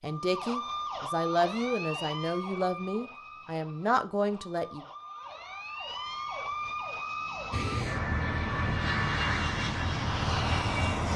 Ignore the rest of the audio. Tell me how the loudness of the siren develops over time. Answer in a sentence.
The loudness of the siren goes down, then up.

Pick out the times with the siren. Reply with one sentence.
You can hear the siren from 0.0 to 11.1 s.